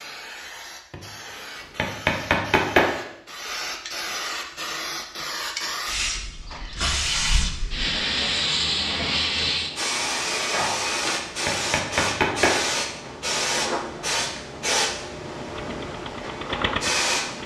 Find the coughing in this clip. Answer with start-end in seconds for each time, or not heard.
not heard.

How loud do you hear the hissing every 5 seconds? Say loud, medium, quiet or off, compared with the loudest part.
medium, loud, loud, loud.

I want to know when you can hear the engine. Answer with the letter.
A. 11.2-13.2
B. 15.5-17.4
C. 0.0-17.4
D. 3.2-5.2
B.